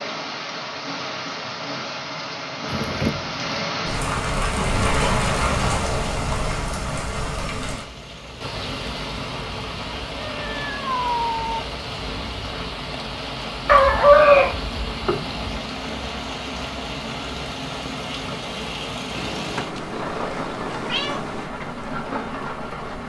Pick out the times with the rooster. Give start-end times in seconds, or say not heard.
13.7-15.4.